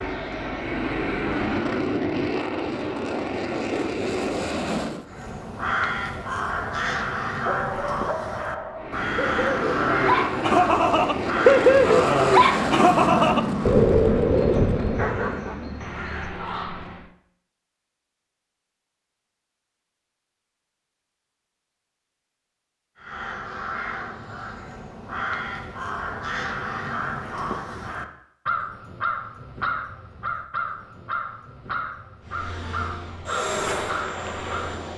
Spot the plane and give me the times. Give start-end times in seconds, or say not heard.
0.0-5.0, 8.8-17.1, 32.2-34.9.